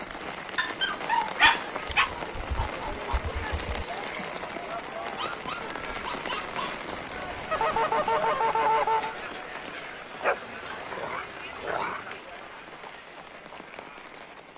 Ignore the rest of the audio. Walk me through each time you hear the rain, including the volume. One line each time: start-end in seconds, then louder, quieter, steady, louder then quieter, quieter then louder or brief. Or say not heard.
0.0-14.5 quieter.